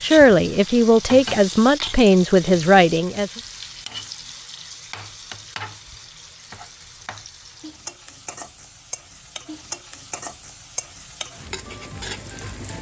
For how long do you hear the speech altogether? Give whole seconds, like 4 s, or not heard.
3 s.